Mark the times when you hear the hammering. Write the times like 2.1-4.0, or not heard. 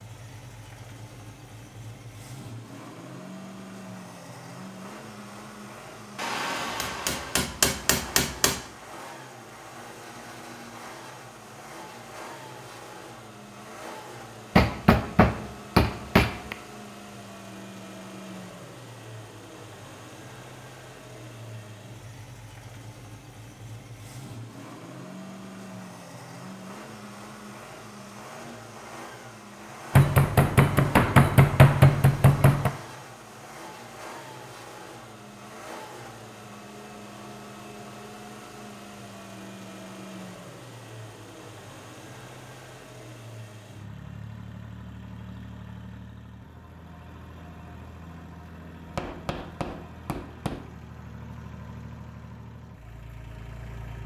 6.2-8.6, 14.6-16.6, 29.9-32.7, 48.9-50.6.